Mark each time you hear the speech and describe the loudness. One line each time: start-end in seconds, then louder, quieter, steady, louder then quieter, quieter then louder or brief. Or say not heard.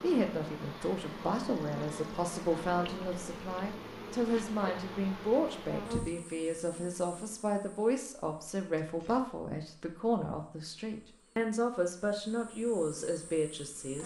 0.0-14.0 steady.